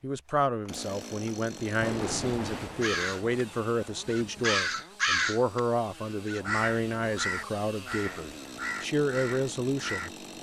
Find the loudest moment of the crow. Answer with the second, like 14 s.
5 s.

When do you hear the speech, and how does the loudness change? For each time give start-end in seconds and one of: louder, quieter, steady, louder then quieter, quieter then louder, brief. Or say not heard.
0.0-10.1 steady.